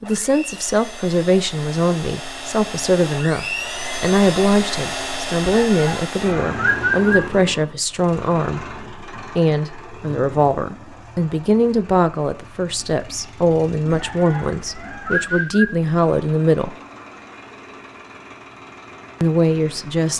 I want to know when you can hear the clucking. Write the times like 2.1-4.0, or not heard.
5.4-7.2, 13.9-15.7.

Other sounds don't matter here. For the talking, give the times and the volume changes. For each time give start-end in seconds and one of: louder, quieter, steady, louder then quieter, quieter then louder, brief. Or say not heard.
0.0-16.8 steady
19.2-20.1 brief.